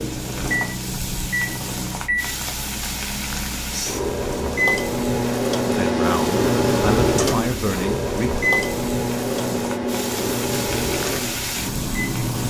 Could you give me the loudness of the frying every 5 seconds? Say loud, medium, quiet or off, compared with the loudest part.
loud, medium, loud.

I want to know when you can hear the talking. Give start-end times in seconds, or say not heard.
5.7-8.4.